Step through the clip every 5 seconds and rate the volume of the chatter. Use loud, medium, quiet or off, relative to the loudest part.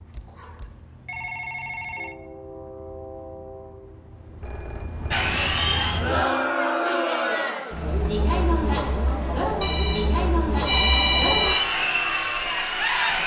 off, loud, loud.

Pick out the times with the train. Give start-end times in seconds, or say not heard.
0.0-6.2.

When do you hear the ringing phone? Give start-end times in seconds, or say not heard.
0.1-2.1, 4.4-5.3, 9.6-11.6.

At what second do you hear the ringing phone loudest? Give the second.
11 s.